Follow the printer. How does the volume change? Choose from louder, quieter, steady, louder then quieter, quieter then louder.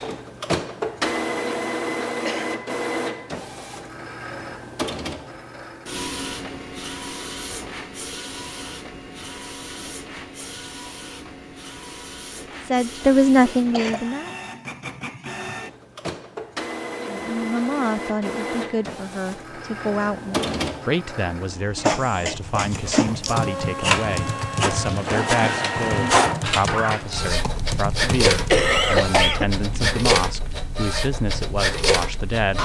quieter then louder.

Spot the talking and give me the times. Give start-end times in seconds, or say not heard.
12.6-14.3, 17.1-32.5.